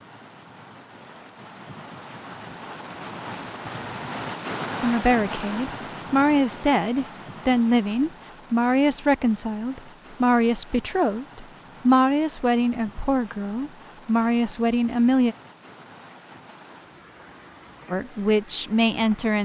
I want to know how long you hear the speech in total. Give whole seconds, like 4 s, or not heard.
12 s.